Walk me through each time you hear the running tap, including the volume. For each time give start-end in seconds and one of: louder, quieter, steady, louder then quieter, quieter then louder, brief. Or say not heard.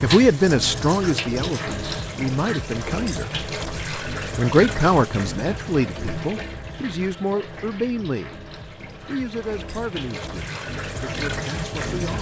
0.0-12.1 quieter then louder.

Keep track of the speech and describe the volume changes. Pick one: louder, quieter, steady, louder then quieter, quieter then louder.
quieter.